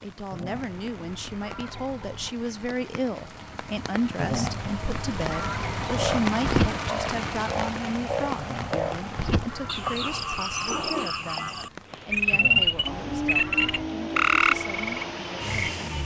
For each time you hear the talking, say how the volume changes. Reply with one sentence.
You can hear the talking from 0.0 to 15.8 s, getting quieter.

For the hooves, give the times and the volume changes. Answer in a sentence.
The hooves can't be heard in this clip.